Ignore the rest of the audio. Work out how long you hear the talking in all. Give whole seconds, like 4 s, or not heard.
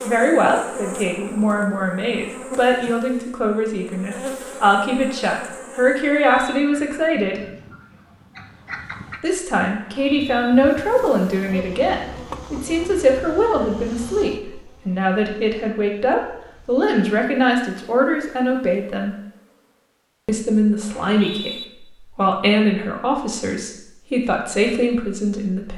23 s.